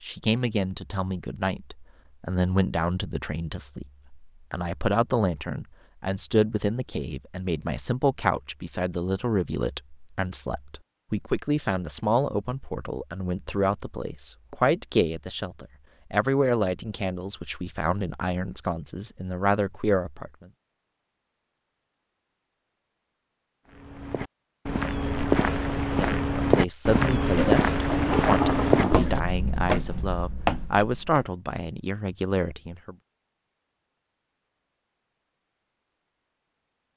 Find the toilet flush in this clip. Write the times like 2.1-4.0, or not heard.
27.2-29.2.